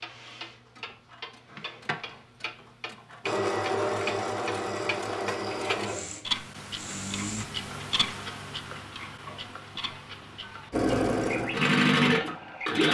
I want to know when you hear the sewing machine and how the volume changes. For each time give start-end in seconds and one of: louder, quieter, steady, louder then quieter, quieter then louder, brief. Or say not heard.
3.2-7.5 quieter
10.7-12.9 brief.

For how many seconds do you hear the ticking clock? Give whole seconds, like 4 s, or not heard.
13 s.